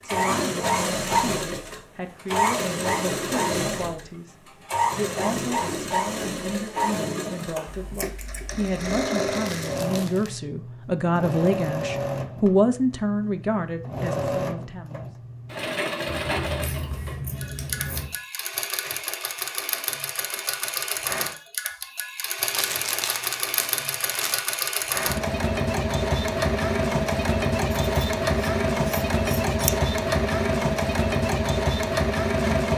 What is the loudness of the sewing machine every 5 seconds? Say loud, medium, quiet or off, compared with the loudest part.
loud, medium, medium, medium, medium, loud, loud.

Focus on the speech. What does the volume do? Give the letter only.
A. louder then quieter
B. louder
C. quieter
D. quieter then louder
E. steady
B.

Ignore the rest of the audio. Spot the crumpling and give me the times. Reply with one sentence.
The crumpling can be heard from 9.3 to 10.4 s and from 22.4 to 24.4 s.